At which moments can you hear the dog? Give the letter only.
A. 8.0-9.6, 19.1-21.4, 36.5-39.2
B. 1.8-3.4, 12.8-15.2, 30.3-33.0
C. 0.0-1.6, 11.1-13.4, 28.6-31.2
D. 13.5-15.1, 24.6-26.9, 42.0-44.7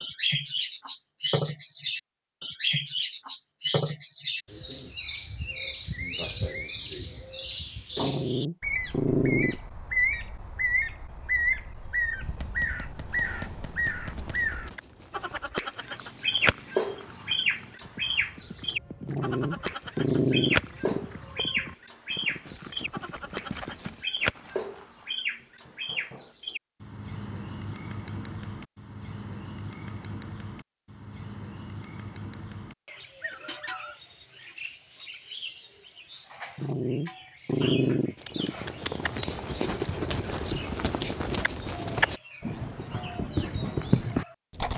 A.